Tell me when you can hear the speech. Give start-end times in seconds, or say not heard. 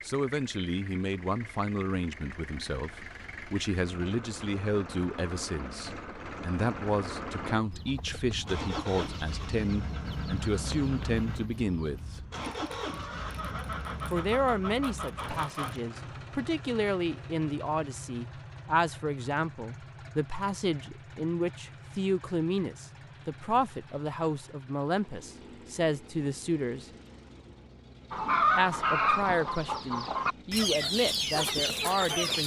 0.1-12.2, 14.1-26.9, 28.6-32.4.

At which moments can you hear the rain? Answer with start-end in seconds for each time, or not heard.
not heard.